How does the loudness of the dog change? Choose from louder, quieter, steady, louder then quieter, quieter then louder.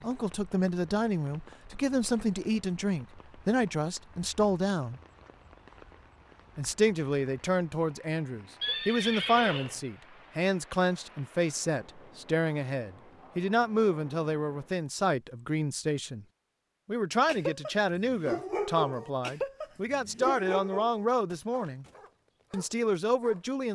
quieter.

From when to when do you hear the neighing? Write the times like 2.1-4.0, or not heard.
8.6-9.8.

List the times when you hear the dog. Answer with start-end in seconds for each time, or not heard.
17.2-23.6.